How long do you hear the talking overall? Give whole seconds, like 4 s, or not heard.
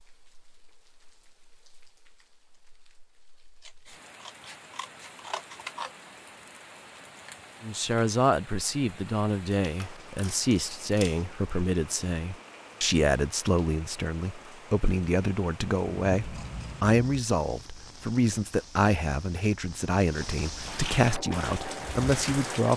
15 s.